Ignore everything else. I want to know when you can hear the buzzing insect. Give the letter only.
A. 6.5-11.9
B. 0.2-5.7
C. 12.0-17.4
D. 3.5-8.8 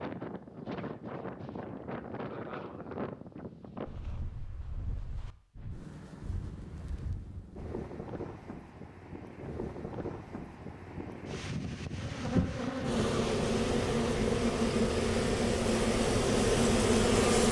C.